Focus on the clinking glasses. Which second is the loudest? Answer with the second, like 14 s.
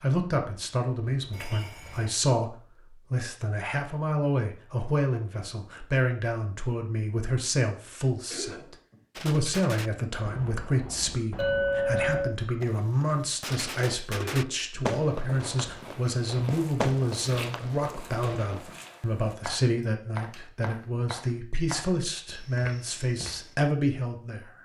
12 s.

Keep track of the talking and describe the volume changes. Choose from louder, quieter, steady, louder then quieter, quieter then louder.
steady.